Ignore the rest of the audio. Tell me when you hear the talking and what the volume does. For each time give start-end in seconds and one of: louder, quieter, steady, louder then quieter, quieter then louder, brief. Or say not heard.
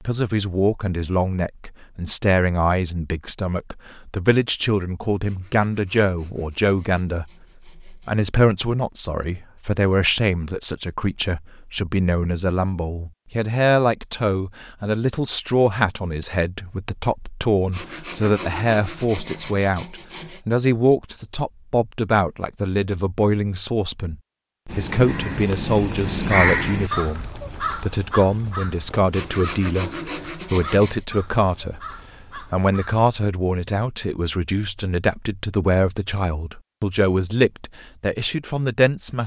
0.0-39.2 steady.